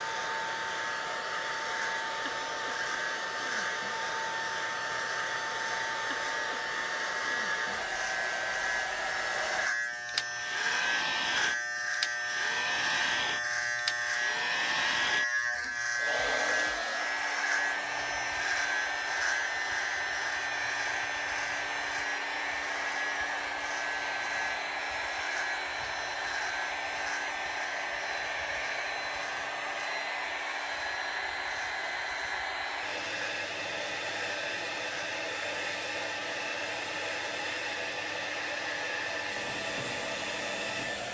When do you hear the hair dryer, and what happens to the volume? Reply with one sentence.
The hair dryer can be heard from 0.0 to 41.0 s, at a steady volume.